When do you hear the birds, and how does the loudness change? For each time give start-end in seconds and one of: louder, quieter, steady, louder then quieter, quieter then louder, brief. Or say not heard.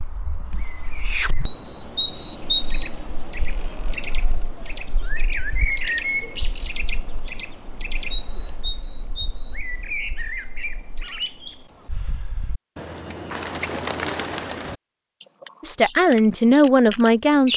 0.0-17.5 quieter then louder.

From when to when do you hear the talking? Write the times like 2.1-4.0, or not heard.
15.6-17.5.